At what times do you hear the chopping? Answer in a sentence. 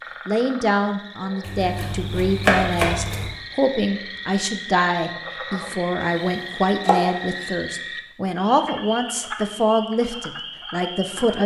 You can hear the chopping from 1.4 to 3.3 s and from 6.0 to 7.5 s.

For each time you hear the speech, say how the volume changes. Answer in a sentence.
The speech can be heard from 0.2 to 11.4 s, at a steady volume.